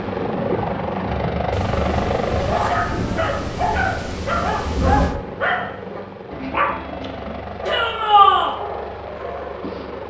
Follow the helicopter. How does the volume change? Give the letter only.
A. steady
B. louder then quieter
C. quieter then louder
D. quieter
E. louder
D.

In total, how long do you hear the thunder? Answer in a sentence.
The thunder can be heard for 4 seconds in total.